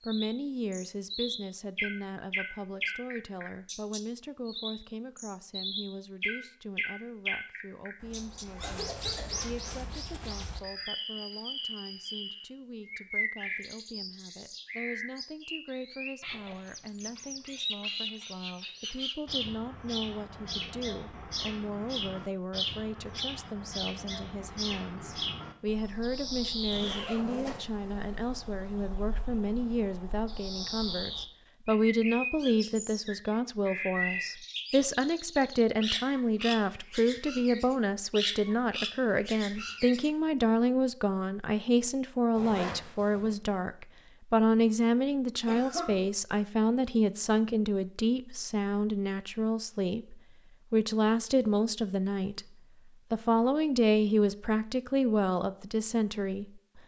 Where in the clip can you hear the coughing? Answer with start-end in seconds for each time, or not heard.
8.6-9.4, 45.5-46.0.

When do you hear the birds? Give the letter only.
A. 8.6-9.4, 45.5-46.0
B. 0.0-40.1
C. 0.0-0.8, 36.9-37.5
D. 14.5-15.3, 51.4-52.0
B.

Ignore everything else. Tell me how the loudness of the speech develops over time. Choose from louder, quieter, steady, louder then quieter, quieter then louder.
louder.